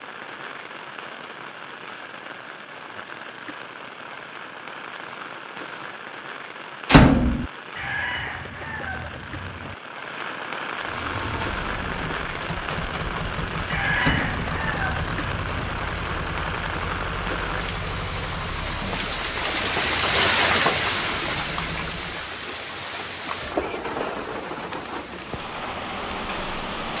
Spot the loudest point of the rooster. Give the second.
14 s.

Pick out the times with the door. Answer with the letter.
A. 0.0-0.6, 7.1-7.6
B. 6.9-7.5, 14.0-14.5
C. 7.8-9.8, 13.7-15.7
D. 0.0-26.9
B.